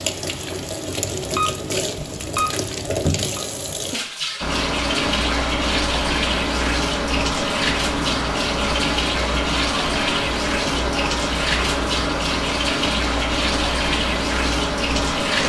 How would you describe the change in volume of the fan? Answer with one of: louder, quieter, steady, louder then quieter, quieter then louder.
steady.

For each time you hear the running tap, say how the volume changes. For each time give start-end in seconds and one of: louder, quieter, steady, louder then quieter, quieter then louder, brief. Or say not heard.
0.0-15.4 steady.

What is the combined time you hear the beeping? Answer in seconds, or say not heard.
2 s.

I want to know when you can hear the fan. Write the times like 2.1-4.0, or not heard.
4.4-15.4.